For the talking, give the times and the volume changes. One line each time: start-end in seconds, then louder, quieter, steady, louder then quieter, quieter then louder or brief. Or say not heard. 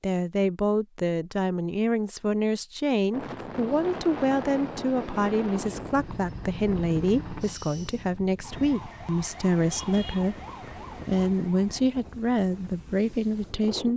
0.0-10.4 steady
11.1-13.9 brief.